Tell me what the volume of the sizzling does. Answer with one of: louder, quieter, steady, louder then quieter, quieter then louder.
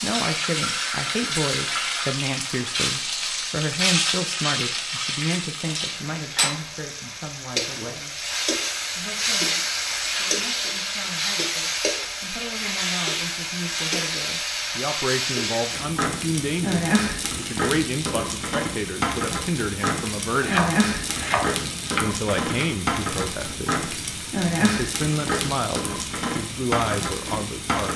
steady.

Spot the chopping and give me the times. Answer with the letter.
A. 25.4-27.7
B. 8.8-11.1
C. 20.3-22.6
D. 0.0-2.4
C.